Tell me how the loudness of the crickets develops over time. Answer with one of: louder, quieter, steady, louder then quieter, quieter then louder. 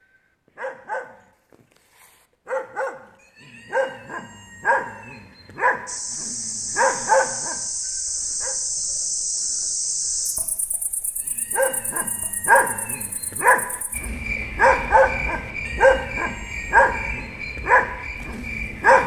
quieter then louder.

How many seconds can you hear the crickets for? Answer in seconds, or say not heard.
13 s.